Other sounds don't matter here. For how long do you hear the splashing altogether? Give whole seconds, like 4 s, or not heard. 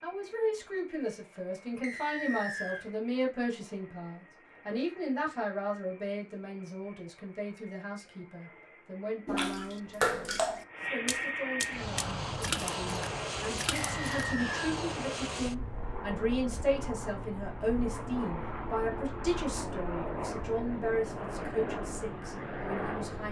5 s.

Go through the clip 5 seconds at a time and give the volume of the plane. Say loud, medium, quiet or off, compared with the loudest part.
quiet, quiet, loud, loud, loud.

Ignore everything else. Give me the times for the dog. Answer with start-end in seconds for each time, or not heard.
not heard.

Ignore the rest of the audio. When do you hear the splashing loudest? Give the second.
10 s.